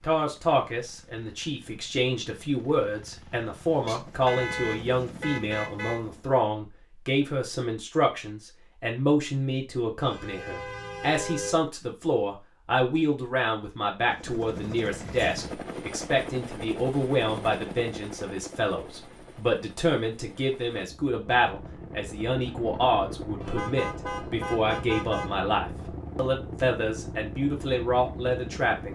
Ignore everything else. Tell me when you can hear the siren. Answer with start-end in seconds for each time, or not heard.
not heard.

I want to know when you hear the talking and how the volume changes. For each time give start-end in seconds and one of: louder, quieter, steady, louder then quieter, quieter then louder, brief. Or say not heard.
0.0-28.9 steady.